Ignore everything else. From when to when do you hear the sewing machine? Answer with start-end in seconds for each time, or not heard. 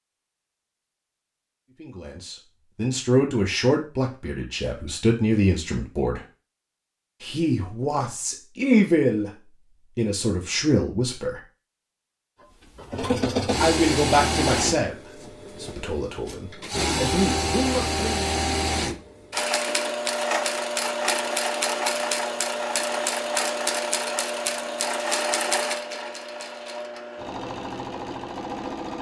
12.8-28.9.